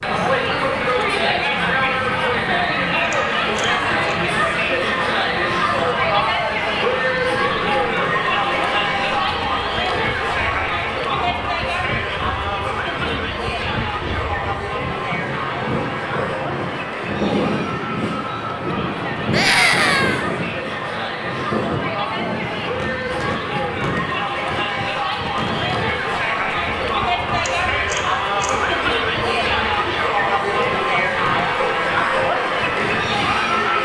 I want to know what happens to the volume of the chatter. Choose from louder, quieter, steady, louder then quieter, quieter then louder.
quieter then louder.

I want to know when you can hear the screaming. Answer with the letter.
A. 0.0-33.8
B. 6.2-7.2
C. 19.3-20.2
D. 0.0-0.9
C.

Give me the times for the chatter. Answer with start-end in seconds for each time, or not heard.
0.0-33.8.